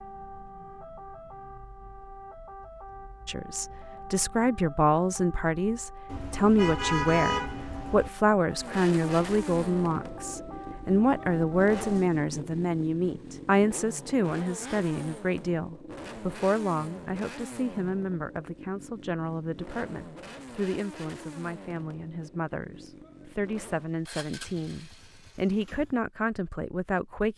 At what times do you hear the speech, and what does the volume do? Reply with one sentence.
You can hear the speech from 3.2 to 27.3 s, getting quieter.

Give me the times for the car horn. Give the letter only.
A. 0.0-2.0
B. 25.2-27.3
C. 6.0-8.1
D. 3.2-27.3
C.